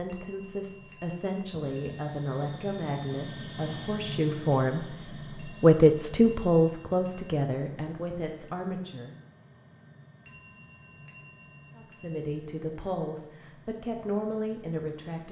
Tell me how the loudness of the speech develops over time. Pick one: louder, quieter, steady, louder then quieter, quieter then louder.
louder then quieter.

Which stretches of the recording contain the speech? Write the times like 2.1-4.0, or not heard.
0.0-9.2, 11.8-15.2.